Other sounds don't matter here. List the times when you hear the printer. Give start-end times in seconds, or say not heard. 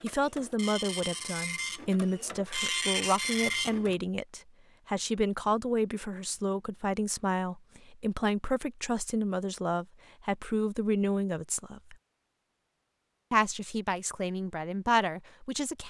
0.0-4.0.